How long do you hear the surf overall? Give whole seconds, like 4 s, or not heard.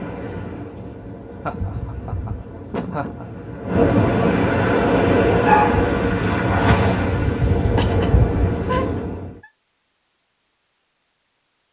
9 s.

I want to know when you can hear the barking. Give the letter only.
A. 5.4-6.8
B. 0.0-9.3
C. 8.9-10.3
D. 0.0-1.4
A.